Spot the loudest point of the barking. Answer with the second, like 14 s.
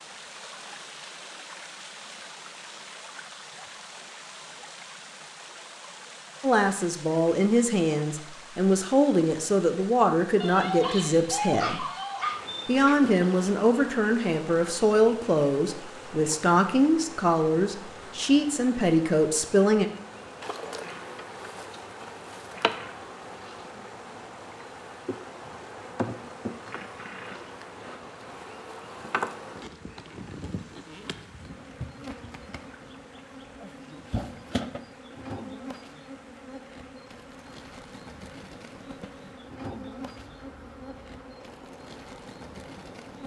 12 s.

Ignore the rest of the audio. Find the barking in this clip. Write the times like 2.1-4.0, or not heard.
10.4-12.9.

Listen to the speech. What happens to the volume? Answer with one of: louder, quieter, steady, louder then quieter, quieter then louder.
steady.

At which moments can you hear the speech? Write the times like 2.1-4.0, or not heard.
6.4-11.8, 12.7-19.9.